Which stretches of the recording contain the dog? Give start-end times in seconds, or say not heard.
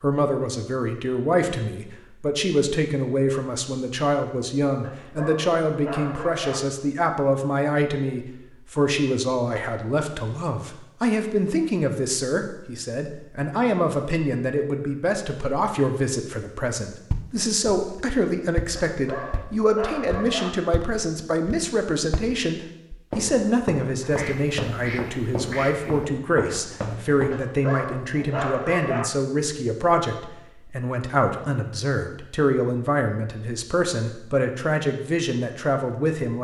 4.8-6.6, 18.8-20.5, 27.3-29.1.